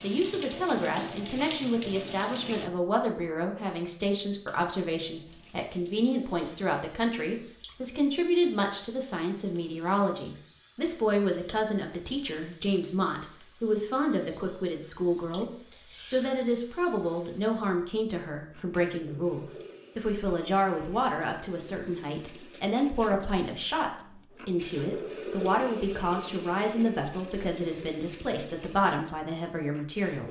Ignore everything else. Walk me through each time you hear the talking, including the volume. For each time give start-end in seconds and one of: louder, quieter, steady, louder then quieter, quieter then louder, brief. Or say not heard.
0.0-30.2 steady.